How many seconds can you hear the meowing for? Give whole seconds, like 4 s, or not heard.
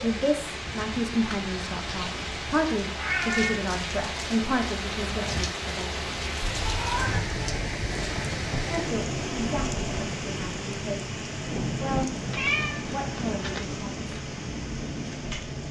3 s.